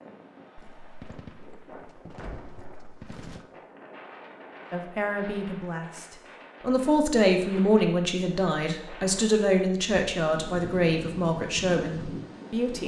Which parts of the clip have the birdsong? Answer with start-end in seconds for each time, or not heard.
not heard.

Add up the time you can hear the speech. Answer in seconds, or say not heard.
8 s.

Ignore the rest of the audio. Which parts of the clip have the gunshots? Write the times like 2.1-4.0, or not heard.
0.6-3.5.